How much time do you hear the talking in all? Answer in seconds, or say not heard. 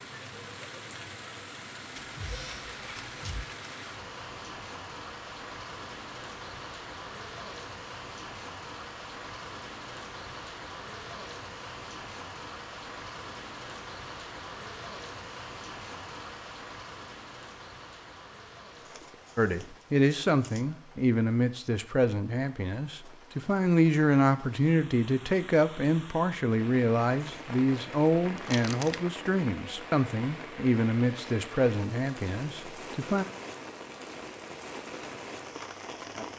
14 s.